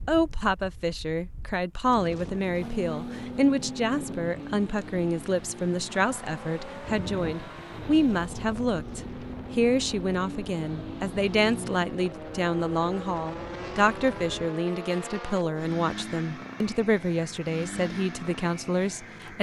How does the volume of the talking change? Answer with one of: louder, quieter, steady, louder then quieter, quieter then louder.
steady.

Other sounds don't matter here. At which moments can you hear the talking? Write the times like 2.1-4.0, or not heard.
0.1-19.3.